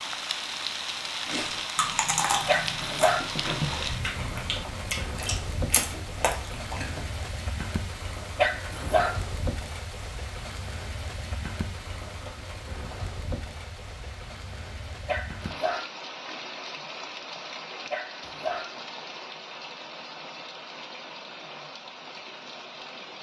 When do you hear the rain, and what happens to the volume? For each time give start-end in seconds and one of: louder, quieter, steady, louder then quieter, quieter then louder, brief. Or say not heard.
0.0-23.1 quieter.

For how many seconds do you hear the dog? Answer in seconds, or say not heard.
3 s.